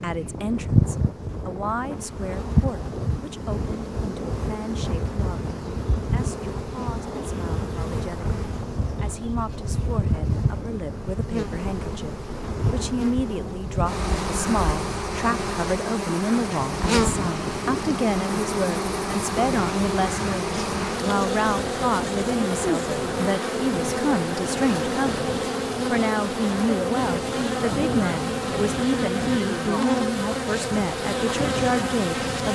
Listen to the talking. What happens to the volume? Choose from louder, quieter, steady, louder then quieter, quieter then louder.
louder.